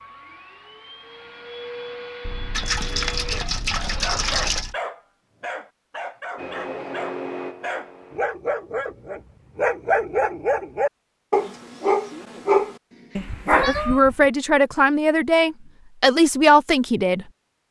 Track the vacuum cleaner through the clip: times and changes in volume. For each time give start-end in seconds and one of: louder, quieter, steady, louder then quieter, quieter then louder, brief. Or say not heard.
0.0-4.2 louder
6.3-8.2 brief.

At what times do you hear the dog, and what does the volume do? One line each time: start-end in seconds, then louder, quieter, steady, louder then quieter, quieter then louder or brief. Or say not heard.
3.8-14.2 louder.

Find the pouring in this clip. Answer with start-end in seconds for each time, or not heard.
2.5-4.7.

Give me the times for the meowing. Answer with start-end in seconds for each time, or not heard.
2.2-4.8, 13.6-14.0.